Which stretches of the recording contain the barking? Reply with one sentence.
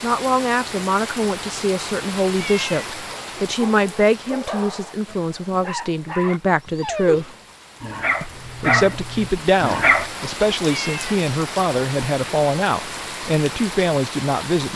The barking can be heard from 3.1 to 10.1 s.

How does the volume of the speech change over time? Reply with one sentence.
The volume of the speech stays about the same.